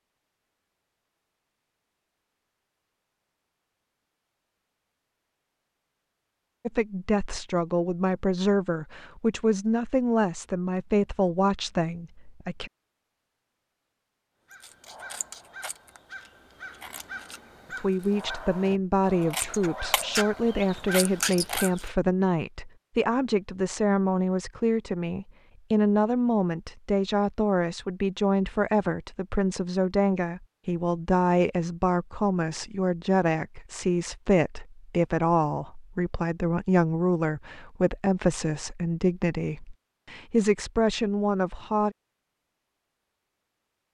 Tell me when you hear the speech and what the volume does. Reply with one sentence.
The speech can be heard from 6.7 to 12.7 s, at a steady volume; and from 17.8 to 42.0 s, at a steady volume.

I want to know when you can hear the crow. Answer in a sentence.
You can hear the crow from 14.5 to 21.9 s.